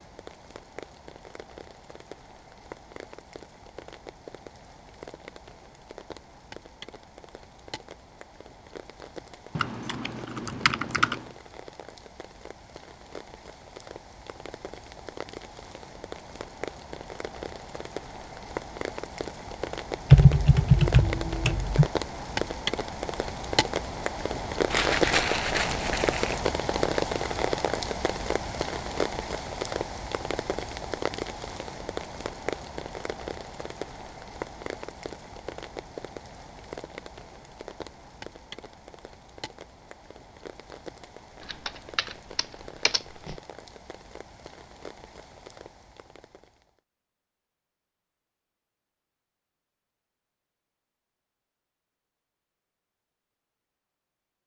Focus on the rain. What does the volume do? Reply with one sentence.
The loudness of the rain goes up, then down.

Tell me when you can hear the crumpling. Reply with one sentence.
You can hear the crumpling from 24.7 to 26.4 s.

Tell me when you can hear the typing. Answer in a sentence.
The typing can be heard from 9.6 to 11.2 s, from 20.1 to 21.9 s and from 41.5 to 43.4 s.